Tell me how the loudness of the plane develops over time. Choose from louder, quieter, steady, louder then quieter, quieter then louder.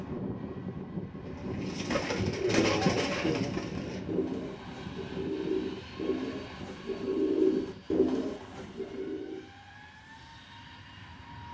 quieter.